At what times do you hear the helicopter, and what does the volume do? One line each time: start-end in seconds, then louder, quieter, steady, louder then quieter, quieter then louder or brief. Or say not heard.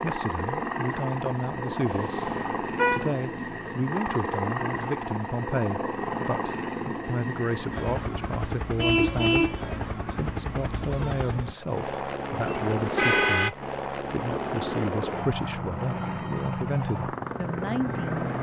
0.0-18.3 steady.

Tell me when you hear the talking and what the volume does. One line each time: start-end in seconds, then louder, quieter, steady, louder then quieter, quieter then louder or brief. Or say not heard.
0.0-18.3 steady.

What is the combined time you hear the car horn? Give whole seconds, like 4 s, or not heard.
3 s.